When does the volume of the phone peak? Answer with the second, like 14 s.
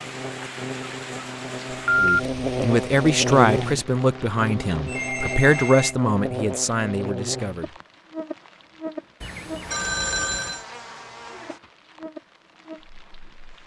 2 s.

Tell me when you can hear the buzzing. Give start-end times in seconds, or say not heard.
0.0-13.6.